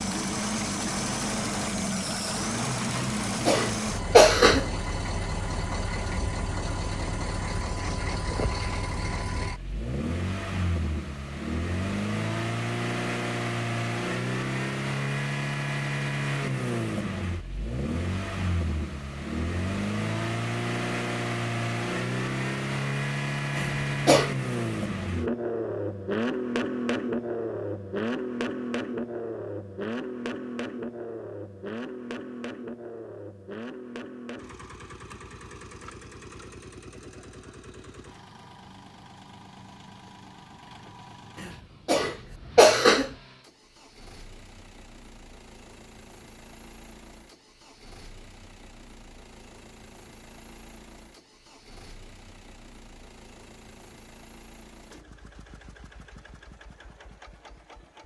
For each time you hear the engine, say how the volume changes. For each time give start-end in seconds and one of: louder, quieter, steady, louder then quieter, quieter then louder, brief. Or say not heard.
0.0-58.0 quieter.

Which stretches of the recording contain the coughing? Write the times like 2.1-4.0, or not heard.
3.0-4.7, 23.6-24.3, 41.4-43.1.